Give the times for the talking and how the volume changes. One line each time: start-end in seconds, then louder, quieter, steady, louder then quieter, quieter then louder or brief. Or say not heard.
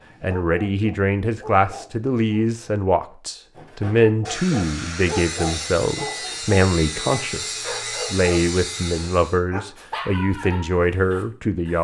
0.2-11.8 steady.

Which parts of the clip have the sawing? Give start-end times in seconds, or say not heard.
3.5-9.4.